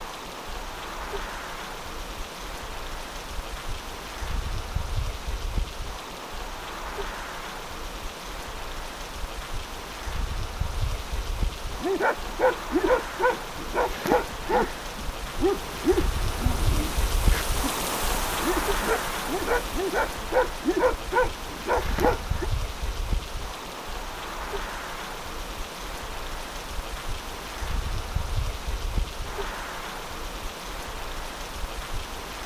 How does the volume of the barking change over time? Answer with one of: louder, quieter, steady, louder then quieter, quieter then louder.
quieter then louder.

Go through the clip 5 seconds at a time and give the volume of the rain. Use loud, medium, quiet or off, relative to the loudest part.
medium, medium, medium, loud, medium, medium, medium.